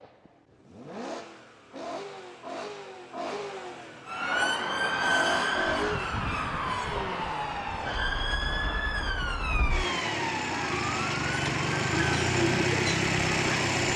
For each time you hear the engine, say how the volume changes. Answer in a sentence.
The engine can be heard from 0.0 to 13.9 s, getting louder.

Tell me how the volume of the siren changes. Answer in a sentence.
The volume of the siren goes down.